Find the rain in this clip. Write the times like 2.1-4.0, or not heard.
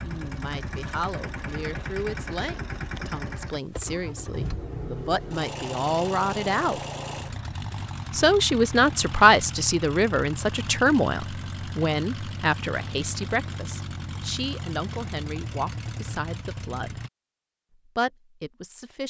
not heard.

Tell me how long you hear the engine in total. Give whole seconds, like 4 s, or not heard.
17 s.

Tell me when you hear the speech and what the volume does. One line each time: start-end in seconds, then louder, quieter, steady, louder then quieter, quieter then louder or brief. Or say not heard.
0.0-6.8 louder
8.1-17.1 quieter
17.9-19.0 brief.